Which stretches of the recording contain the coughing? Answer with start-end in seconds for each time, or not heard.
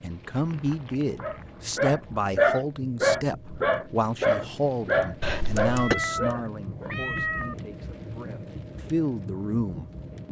5.2-6.0.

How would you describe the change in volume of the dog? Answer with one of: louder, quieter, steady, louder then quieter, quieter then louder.
quieter.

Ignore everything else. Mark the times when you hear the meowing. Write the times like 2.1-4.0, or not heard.
0.2-2.2, 5.7-7.5.